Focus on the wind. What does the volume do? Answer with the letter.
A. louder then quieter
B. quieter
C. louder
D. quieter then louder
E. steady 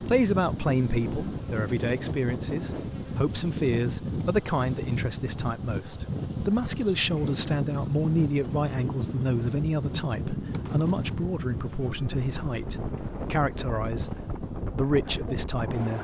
E.